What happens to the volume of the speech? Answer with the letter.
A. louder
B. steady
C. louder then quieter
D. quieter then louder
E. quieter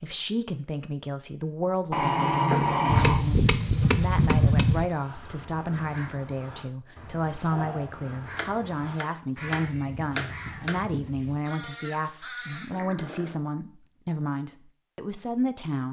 B.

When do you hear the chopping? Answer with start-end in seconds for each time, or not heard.
2.9-4.8, 8.3-10.8.